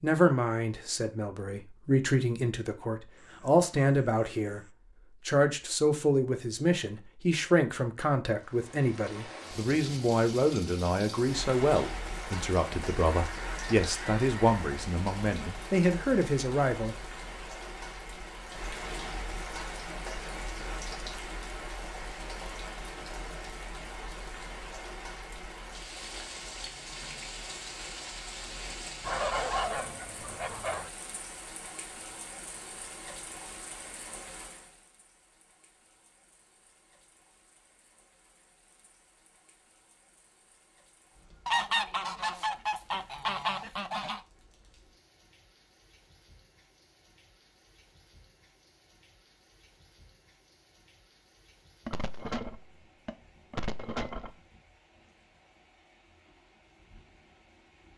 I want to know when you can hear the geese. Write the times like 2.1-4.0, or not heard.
3.2-4.7, 13.1-14.6, 29.1-30.9, 41.5-44.2, 51.9-54.4.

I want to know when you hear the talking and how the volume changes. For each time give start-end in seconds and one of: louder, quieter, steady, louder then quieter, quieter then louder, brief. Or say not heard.
0.0-16.9 steady.